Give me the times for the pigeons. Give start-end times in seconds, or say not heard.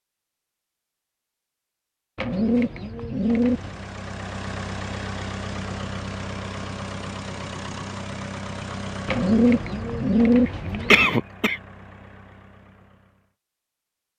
2.1-3.9, 9.1-11.1.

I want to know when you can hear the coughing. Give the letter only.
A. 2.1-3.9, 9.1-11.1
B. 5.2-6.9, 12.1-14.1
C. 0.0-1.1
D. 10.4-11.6
D.